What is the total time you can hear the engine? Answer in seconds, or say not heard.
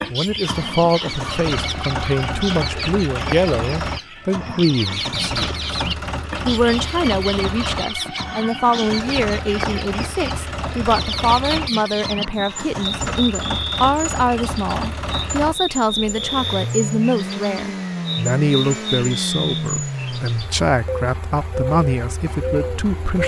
23 s.